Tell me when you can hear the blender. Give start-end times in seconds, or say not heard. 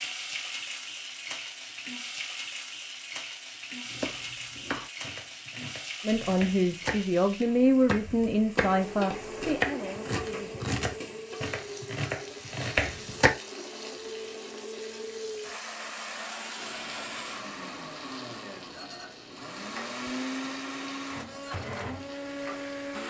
8.7-23.0.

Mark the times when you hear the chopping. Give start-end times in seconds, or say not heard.
3.9-7.0, 7.8-13.3.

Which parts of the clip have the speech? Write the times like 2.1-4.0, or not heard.
6.0-10.7.